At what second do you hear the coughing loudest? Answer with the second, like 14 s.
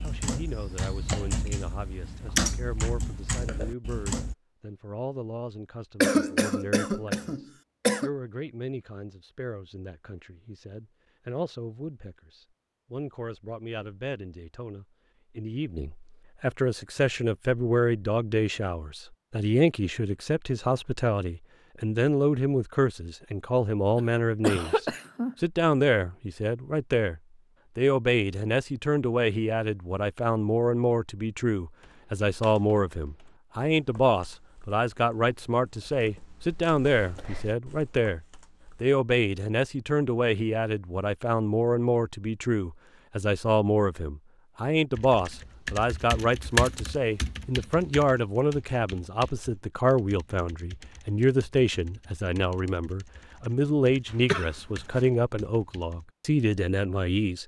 6 s.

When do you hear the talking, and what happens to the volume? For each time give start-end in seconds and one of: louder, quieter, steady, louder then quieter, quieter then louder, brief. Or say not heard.
0.0-38.2 louder
38.8-57.4 steady.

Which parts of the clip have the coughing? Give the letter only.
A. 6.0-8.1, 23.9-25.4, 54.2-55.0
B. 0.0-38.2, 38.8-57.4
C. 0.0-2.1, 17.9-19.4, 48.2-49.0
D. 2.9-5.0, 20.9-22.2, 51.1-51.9
A.